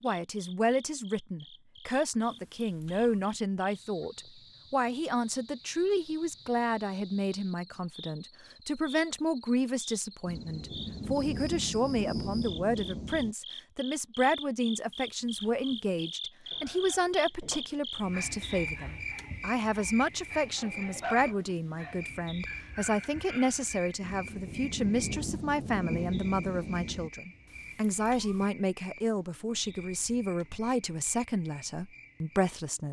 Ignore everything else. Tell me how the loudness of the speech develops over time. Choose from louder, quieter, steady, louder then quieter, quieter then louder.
steady.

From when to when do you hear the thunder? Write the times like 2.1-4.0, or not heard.
10.2-13.3, 24.0-27.1.